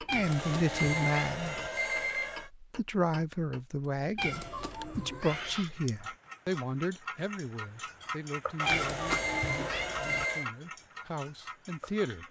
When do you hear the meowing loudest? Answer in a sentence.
The volume of the meowing peaks at 9 seconds.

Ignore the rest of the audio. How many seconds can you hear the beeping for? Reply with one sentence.
The beeping can be heard for 4 seconds in total.